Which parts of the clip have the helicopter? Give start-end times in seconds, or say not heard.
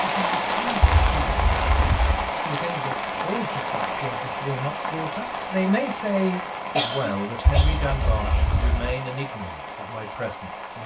not heard.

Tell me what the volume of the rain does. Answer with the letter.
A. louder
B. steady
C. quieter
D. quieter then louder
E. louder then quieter
C.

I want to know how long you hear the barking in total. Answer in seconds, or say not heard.
3 s.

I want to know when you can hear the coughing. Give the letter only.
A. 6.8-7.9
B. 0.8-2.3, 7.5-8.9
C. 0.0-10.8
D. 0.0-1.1
A.